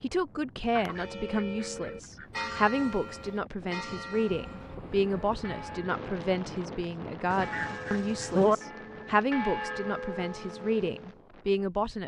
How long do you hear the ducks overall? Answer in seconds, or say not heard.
3 s.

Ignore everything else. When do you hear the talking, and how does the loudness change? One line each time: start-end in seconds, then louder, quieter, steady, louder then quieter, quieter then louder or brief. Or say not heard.
0.0-12.0 steady.